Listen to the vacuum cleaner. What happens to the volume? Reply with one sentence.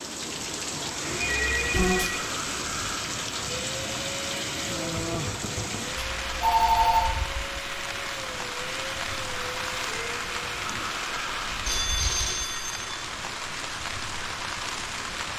The loudness of the vacuum cleaner stays about the same.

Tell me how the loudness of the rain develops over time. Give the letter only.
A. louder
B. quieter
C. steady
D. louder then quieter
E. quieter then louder
C.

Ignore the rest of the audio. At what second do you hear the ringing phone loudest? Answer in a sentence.
The loudest moment of the ringing phone is at 7 seconds.